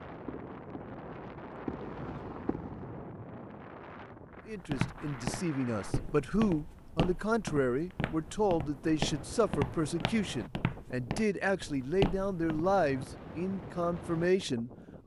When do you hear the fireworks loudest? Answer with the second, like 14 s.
2 s.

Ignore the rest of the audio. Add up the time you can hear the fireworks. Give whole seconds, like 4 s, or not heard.
3 s.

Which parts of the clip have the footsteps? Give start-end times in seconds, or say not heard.
4.7-13.1.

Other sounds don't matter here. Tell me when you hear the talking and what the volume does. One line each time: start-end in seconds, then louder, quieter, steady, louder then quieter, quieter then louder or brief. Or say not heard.
4.5-15.0 steady.